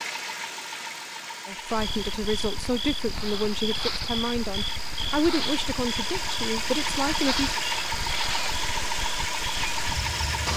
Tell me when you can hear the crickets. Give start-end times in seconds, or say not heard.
1.6-10.5.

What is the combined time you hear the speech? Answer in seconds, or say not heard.
6 s.